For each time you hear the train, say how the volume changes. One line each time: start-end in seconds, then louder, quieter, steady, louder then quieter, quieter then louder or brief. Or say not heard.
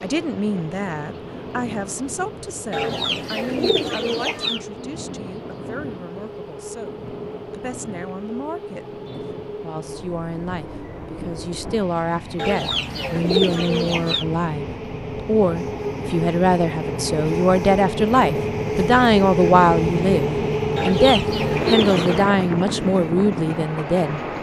0.0-24.3 louder.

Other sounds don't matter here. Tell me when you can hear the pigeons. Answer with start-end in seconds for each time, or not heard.
2.7-4.6, 12.3-14.2, 20.8-22.2.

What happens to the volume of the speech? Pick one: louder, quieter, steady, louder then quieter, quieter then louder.
quieter then louder.